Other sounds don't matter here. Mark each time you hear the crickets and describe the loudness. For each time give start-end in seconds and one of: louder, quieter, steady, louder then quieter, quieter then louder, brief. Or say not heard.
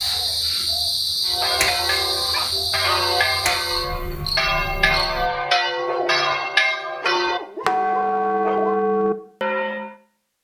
0.0-5.3 quieter.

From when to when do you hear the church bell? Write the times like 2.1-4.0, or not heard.
1.2-9.9.